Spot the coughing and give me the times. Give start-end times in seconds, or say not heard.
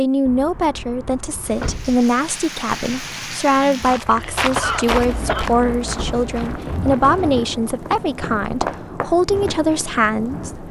4.1-5.5.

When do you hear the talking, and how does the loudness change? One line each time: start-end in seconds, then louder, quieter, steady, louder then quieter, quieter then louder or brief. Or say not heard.
0.0-10.6 steady.